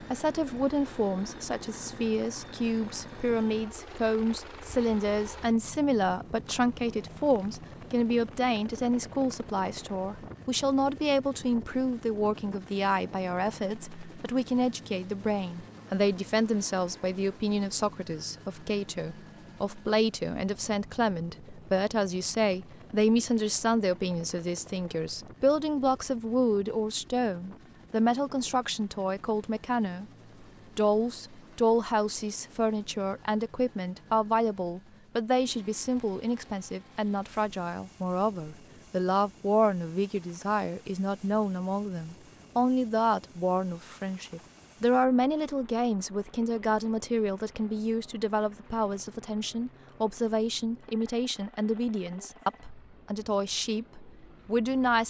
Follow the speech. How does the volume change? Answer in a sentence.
The loudness of the speech stays about the same.